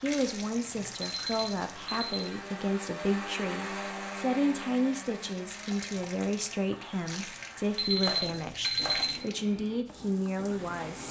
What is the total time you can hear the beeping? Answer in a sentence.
You can hear the beeping for 3 seconds altogether.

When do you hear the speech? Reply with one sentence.
You can hear the speech from 0.0 to 11.0 s.